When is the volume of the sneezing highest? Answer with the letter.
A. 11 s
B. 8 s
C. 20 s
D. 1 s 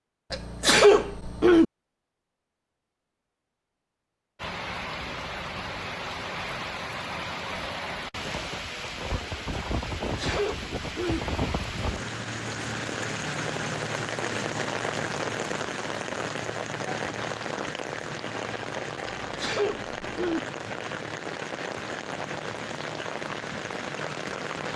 D.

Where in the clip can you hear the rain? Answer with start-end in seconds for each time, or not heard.
4.3-24.7.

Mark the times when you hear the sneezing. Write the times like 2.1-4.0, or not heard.
0.3-1.6, 10.0-11.2, 19.2-20.4.